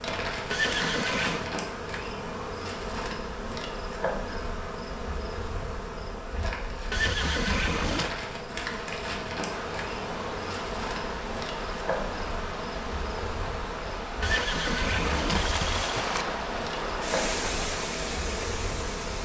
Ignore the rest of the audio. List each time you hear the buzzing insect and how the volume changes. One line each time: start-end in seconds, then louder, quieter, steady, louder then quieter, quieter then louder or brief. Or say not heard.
0.0-19.2 steady.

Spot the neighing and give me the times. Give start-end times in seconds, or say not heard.
0.5-1.5, 6.9-8.2, 14.2-16.2.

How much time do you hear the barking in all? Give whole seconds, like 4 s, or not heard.
not heard.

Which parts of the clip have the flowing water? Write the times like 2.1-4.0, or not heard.
9.4-19.2.